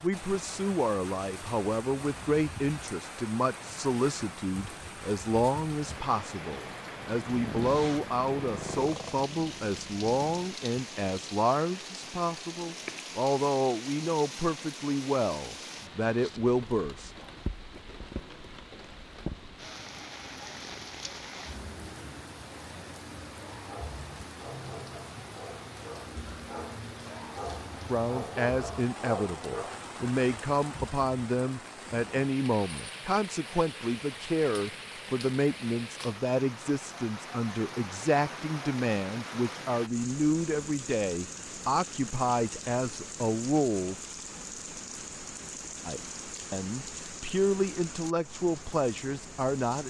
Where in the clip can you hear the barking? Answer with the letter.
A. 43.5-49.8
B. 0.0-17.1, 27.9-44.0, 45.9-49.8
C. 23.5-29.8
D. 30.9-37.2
C.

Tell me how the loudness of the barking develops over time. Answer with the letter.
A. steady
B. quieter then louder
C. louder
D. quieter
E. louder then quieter
C.